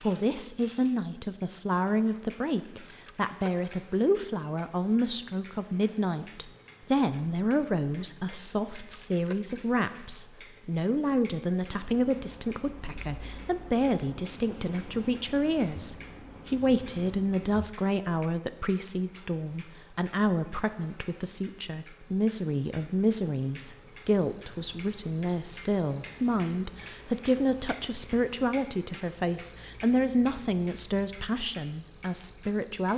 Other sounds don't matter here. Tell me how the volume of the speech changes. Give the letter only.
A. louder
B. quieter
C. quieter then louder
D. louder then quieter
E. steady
E.